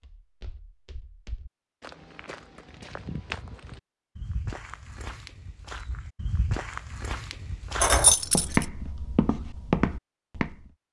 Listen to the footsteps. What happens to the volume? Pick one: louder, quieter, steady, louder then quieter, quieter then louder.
louder.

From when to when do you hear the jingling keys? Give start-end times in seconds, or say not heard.
7.8-8.7.